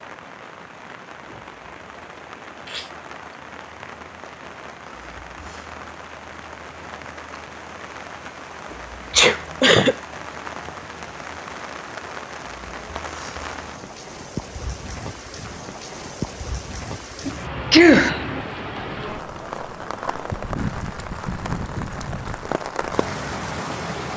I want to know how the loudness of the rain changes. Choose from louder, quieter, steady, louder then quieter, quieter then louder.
louder.